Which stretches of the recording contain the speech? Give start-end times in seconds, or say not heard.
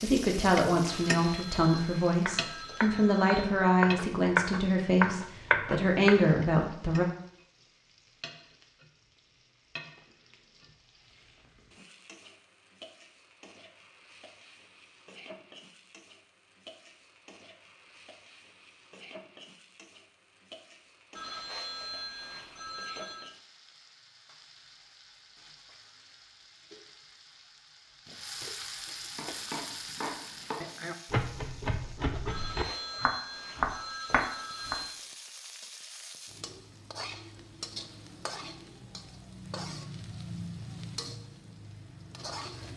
0.0-7.0.